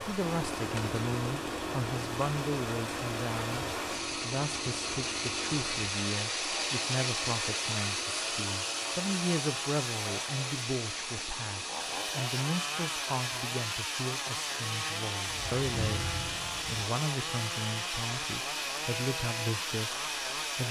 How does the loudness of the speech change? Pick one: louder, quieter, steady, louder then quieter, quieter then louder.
steady.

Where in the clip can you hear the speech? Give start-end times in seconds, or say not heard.
0.1-20.6.